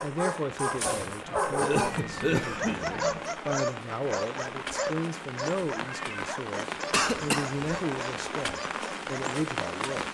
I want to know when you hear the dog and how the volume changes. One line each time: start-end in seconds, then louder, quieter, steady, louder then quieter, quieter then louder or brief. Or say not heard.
0.0-9.8 quieter.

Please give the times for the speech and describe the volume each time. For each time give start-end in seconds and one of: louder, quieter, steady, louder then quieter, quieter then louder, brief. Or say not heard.
0.0-10.1 steady.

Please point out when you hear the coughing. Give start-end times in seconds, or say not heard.
1.6-2.8, 6.9-7.6.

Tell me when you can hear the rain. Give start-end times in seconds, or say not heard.
0.0-10.1.